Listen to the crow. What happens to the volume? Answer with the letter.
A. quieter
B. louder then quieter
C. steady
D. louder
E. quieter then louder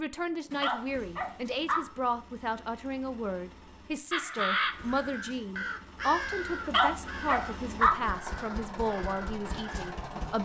A.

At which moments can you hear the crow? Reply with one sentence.
You can hear the crow from 4.1 to 9.9 s.